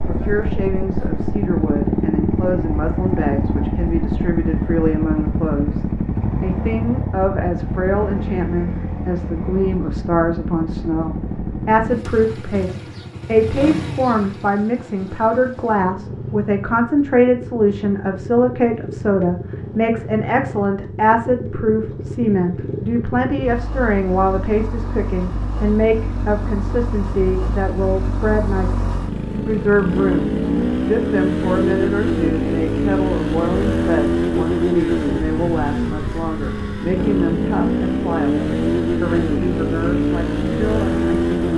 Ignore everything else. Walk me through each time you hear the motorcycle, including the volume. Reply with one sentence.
The motorcycle can be heard from 0.0 to 41.5 s, getting quieter then louder.